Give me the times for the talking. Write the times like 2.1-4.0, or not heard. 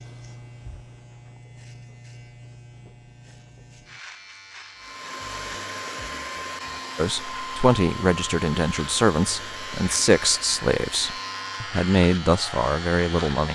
7.0-13.5.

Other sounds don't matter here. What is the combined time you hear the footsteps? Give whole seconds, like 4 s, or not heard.
not heard.